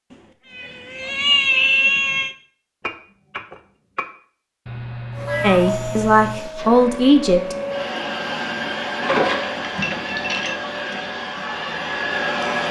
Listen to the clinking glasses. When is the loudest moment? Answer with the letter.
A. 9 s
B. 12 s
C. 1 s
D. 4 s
A.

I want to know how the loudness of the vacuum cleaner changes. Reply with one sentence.
The loudness of the vacuum cleaner stays about the same.